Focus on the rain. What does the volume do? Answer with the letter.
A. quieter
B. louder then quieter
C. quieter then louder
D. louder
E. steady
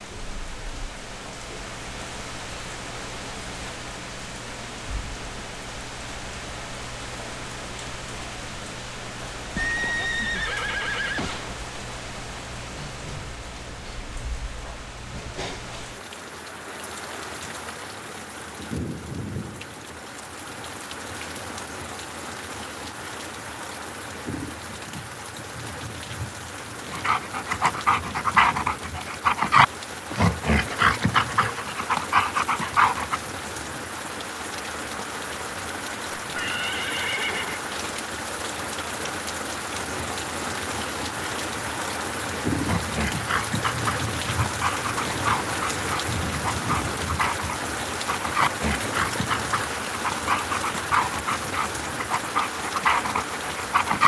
D.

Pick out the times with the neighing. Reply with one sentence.
You can hear the neighing from 9.6 to 11.6 s and from 36.2 to 37.6 s.